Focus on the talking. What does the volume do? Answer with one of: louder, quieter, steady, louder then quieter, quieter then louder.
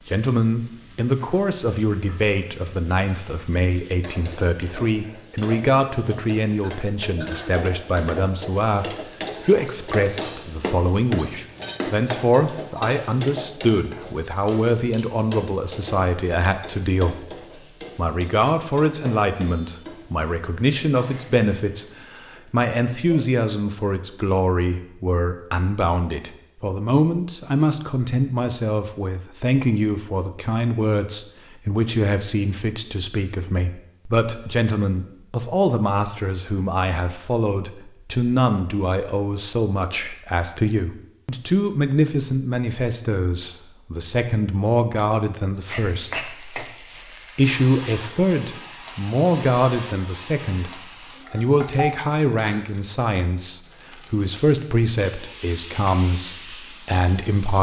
steady.